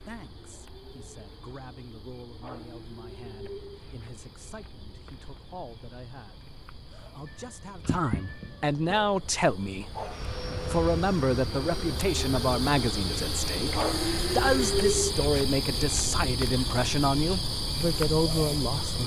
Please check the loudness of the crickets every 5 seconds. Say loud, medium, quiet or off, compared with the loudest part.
quiet, quiet, loud, loud.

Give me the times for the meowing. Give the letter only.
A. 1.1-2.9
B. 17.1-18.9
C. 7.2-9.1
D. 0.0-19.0
C.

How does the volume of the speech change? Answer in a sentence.
The loudness of the speech goes up.